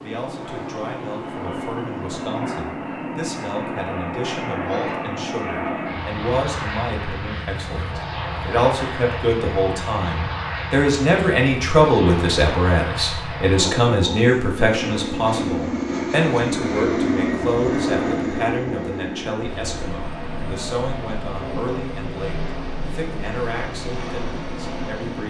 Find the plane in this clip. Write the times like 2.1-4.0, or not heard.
0.0-25.2.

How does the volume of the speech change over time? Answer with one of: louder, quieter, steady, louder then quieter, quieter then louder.
louder then quieter.